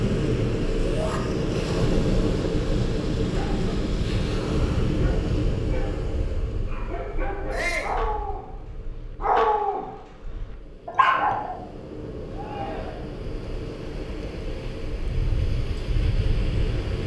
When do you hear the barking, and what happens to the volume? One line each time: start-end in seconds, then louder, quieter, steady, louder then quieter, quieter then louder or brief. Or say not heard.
3.3-11.6 louder.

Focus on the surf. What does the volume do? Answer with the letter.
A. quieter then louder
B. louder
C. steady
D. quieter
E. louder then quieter
A.